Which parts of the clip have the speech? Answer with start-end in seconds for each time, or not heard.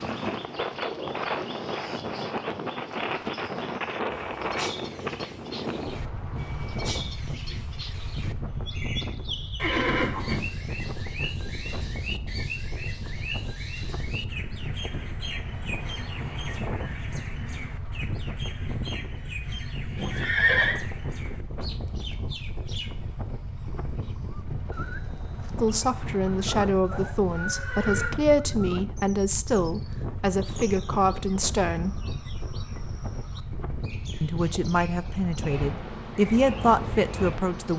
25.6-32.0, 34.2-37.7.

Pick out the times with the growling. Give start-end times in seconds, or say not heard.
not heard.